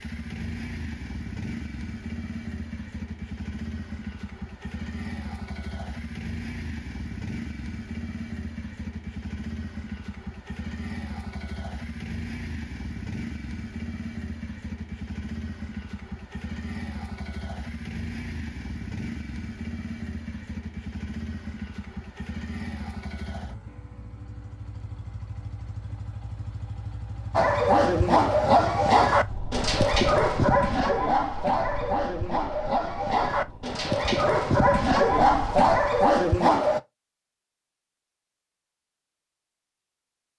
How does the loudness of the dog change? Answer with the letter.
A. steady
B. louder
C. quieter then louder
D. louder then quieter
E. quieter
C.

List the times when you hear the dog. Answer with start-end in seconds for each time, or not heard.
27.3-36.8.